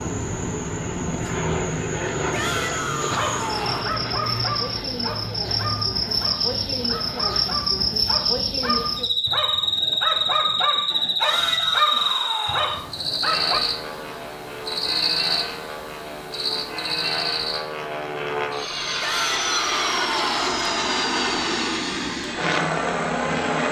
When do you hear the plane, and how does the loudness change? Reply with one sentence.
You can hear the plane from 0.0 to 7.4 s, getting quieter; and from 13.2 to 23.6 s, getting louder.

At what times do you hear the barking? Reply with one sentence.
You can hear the barking from 3.1 to 13.6 s.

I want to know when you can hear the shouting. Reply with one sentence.
You can hear the shouting from 2.3 to 4.0 s, from 11.2 to 12.8 s and from 19.0 to 20.4 s.